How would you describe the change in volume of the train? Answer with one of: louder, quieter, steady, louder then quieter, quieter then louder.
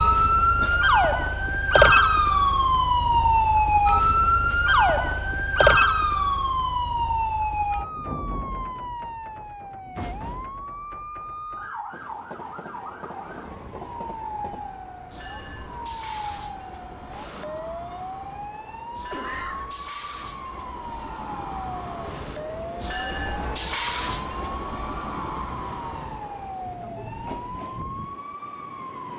louder then quieter.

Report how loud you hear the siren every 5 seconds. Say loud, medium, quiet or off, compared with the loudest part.
loud, medium, quiet, quiet, quiet, quiet.